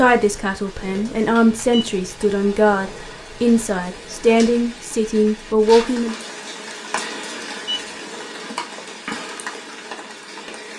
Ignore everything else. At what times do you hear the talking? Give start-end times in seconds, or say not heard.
0.0-6.2.